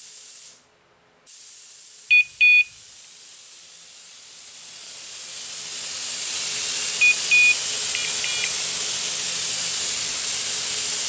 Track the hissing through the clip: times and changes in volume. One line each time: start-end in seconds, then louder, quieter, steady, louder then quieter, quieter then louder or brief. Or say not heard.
0.0-11.0 louder.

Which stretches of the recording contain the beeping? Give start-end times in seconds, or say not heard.
2.1-2.6, 7.0-8.5.